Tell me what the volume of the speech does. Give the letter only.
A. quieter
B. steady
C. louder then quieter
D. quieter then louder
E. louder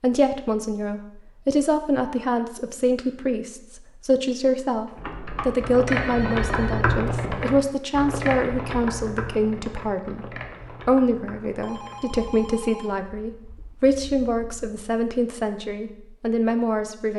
B.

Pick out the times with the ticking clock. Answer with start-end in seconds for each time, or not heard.
not heard.